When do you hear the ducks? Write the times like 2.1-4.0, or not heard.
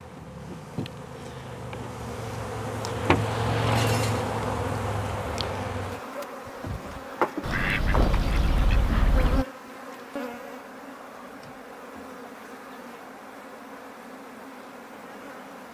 7.4-9.4.